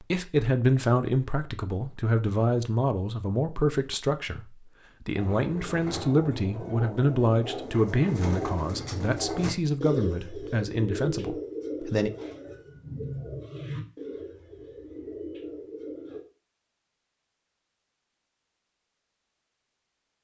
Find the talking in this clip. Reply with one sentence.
The talking can be heard from 0.0 to 12.1 s.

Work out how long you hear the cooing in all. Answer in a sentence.
You can hear the cooing for 11 seconds altogether.